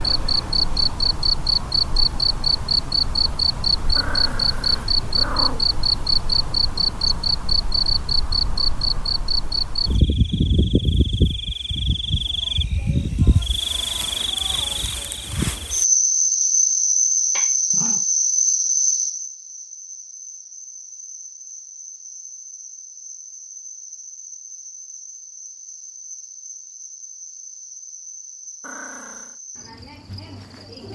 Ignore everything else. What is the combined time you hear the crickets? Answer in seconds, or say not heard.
31 s.